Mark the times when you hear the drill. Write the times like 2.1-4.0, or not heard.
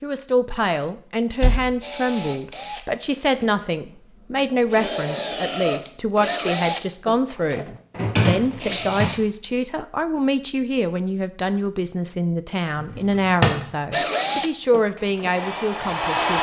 1.8-9.2, 13.9-16.3.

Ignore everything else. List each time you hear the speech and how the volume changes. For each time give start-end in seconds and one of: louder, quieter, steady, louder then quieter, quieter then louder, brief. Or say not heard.
0.0-16.3 steady.